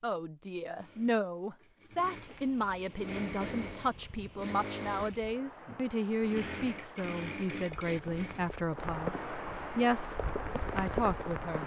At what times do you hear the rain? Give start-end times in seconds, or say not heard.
2.2-11.6.